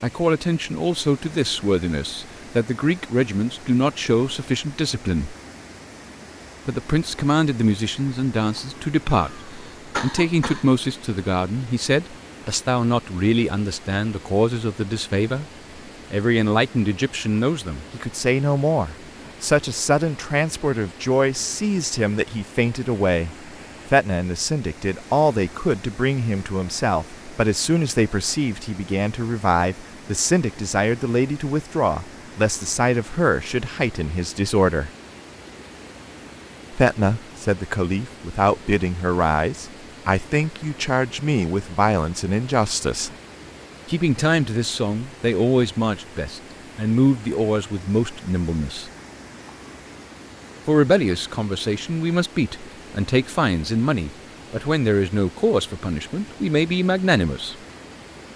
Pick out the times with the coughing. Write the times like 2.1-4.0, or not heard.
9.2-10.7.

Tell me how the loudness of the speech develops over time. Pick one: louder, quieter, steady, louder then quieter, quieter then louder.
steady.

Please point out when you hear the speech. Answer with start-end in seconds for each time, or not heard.
0.0-5.3, 6.7-15.4, 16.1-34.9, 36.7-43.1, 43.9-48.9, 50.6-57.5.